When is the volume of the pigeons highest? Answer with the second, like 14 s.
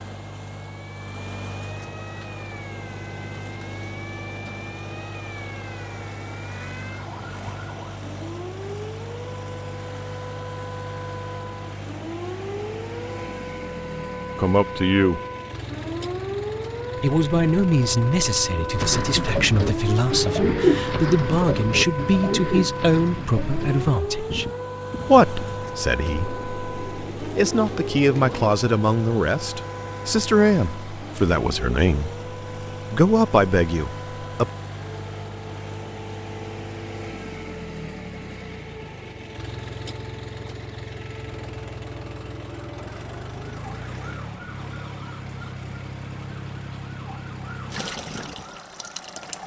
21 s.